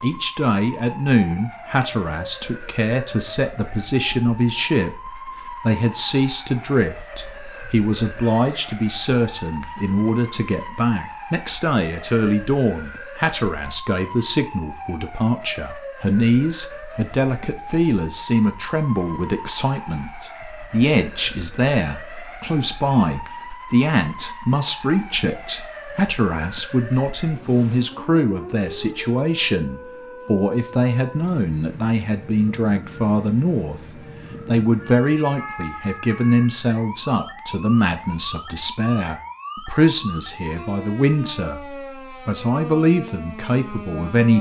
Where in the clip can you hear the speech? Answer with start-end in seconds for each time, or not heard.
0.0-33.8, 34.5-44.3.